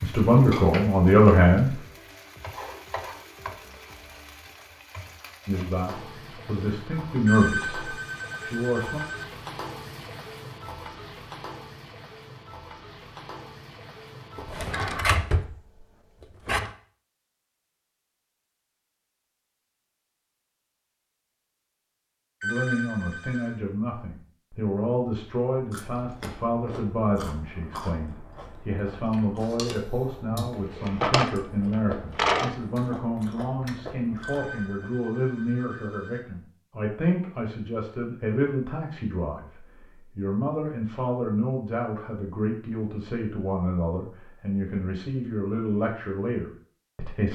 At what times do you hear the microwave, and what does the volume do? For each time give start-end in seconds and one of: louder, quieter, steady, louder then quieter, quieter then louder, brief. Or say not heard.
not heard.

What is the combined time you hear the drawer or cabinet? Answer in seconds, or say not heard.
4 s.